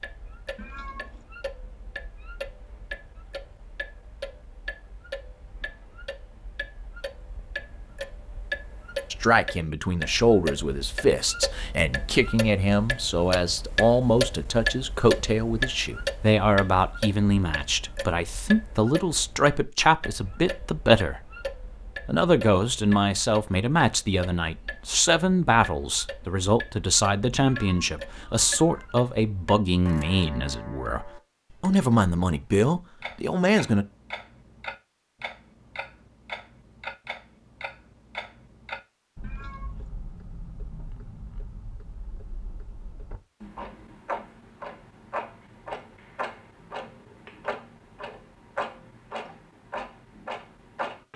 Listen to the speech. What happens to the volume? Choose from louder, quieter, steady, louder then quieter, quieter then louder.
steady.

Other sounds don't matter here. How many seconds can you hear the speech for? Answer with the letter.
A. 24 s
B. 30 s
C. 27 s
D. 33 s
A.